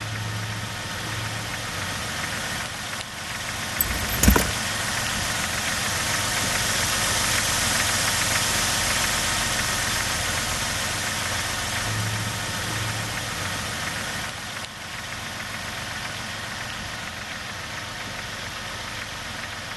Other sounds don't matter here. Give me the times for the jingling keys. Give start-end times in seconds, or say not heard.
3.8-4.5.